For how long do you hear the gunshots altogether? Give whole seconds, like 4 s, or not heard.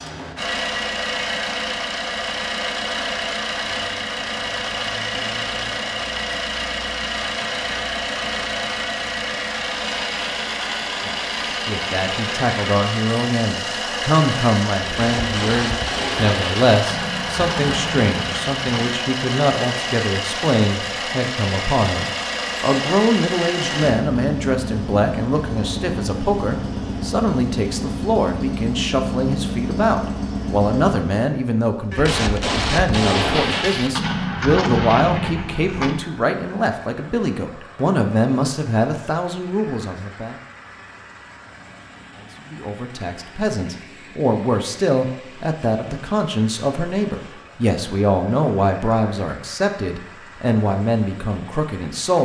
8 s.